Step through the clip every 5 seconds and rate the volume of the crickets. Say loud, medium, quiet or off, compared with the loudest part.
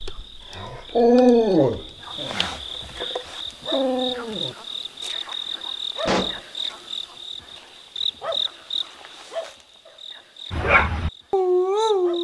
loud, loud, medium.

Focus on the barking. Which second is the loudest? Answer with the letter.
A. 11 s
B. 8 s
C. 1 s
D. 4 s
C.